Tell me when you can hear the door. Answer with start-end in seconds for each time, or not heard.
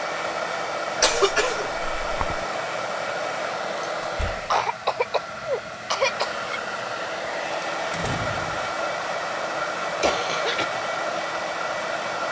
4.0-4.5, 7.9-8.8.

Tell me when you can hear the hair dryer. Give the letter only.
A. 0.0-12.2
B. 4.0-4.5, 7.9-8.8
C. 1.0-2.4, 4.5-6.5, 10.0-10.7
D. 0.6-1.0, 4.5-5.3
A.